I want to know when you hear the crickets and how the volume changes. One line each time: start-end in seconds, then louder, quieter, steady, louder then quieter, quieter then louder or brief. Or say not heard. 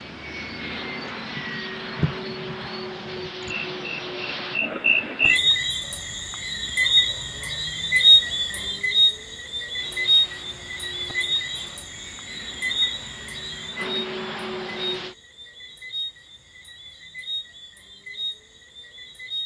0.0-19.4 louder then quieter.